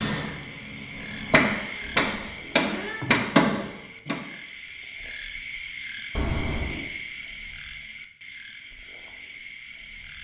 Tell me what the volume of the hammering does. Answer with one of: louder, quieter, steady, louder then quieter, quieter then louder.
louder.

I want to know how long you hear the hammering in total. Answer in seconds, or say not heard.
4 s.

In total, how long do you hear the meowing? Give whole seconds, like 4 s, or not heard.
2 s.